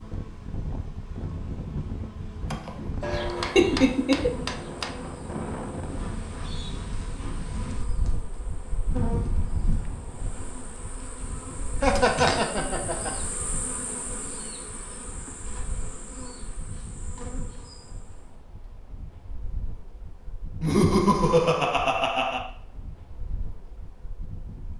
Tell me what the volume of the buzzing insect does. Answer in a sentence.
The loudness of the buzzing insect goes up, then down.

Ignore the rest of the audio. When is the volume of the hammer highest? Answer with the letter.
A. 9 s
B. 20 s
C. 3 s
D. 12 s
C.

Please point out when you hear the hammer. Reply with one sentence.
The hammer can be heard from 3.0 to 5.0 s.